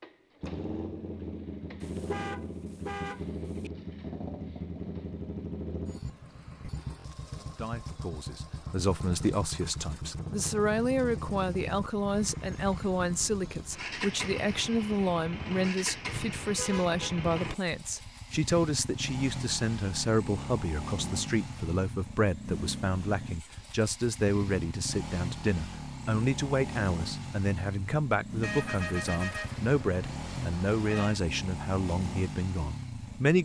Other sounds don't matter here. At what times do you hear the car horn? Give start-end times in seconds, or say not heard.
1.8-3.7, 16.0-17.2, 28.4-31.2.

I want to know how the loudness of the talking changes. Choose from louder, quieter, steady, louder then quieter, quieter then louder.
steady.